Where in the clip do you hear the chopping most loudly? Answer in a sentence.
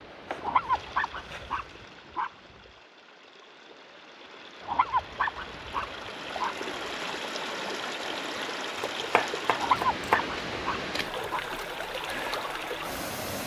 The volume of the chopping peaks at 10 seconds.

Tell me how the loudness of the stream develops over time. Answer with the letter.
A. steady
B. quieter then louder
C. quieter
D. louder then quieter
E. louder
E.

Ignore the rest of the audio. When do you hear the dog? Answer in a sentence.
You can hear the dog from 0.4 to 2.3 s, from 4.6 to 6.5 s and from 9.6 to 11.4 s.